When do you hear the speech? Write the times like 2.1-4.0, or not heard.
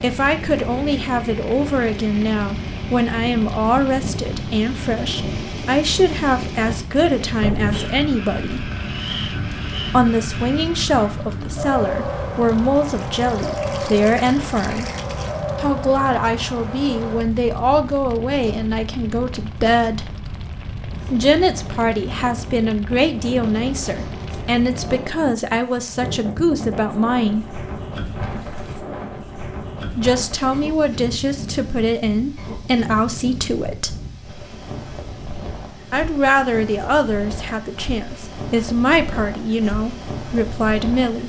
0.0-8.7, 9.9-14.8, 15.6-20.1, 21.1-27.4, 29.9-34.0, 35.9-41.2.